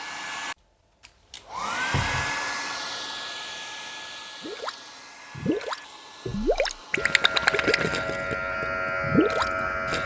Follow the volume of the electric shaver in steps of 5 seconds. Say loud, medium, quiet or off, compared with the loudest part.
off, loud.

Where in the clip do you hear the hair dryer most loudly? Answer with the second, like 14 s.
2 s.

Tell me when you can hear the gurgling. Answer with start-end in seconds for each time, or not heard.
4.4-10.0.